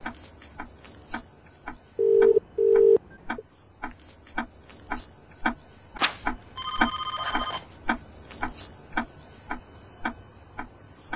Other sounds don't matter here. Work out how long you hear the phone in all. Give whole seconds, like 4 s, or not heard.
3 s.